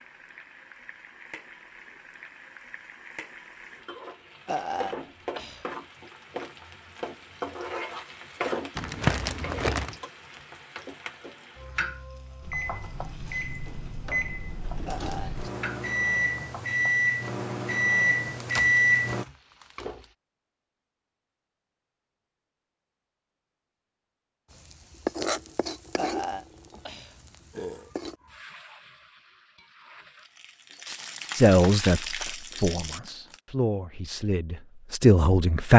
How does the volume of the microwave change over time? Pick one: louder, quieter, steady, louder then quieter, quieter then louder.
louder.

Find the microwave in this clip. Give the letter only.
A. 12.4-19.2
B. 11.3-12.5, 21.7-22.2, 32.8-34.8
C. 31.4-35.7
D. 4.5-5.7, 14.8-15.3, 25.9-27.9
A.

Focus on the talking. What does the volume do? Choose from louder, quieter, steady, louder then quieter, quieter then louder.
quieter then louder.